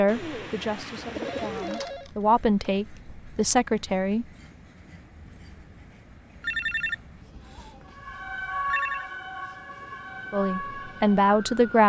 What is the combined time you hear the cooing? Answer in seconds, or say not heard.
2 s.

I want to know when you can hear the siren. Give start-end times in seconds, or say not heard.
7.9-11.8.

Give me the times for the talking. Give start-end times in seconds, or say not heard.
0.0-4.2, 10.3-11.8.